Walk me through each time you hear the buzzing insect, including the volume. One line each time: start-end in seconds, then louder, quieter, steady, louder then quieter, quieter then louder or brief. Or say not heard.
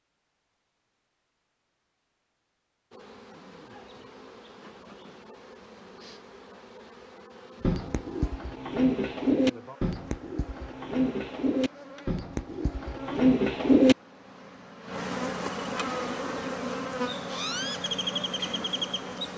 2.9-19.3 louder.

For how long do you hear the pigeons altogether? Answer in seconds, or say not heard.
6 s.